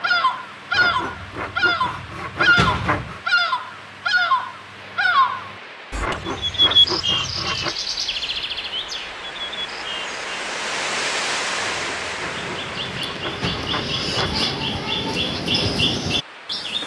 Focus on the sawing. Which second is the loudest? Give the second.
3 s.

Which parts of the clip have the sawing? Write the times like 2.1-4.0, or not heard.
0.7-3.2, 6.0-7.8, 11.6-14.5.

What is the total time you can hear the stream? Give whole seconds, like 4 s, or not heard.
17 s.